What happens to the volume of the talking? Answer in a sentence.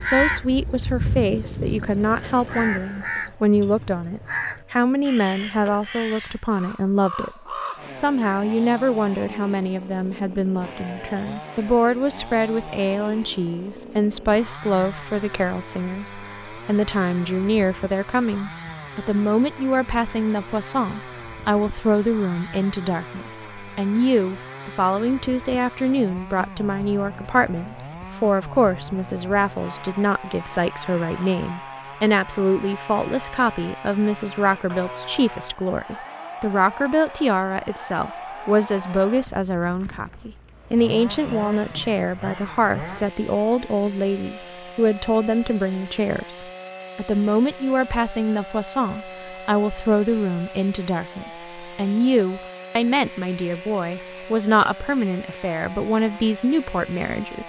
The volume of the talking stays about the same.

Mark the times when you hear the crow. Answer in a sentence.
The crow can be heard from 0.0 to 8.4 s.